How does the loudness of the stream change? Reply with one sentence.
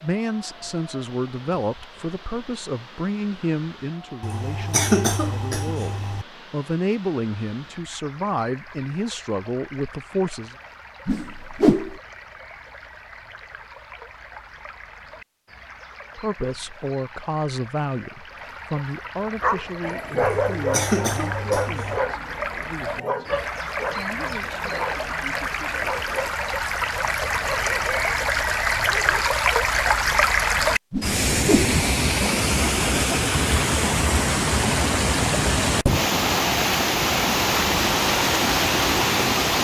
The volume of the stream goes up.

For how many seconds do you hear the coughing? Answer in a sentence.
You can hear the coughing for 4 seconds altogether.